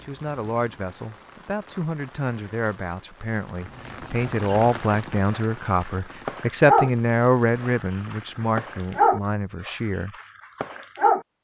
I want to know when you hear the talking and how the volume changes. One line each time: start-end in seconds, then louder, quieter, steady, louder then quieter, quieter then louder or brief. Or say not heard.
0.1-10.2 louder then quieter.